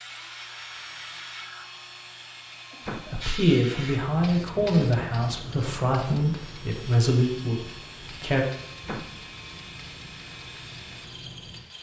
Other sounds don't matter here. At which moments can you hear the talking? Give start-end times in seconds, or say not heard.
3.0-8.4.